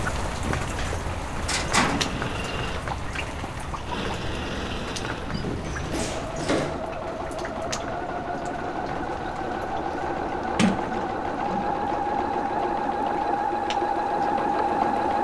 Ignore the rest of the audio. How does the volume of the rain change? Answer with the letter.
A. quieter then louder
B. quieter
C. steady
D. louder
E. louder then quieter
B.